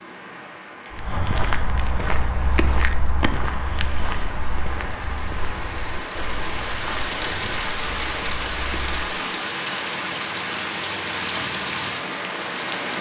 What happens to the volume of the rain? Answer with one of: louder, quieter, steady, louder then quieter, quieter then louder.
louder.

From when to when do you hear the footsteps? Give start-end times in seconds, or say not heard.
0.9-9.1.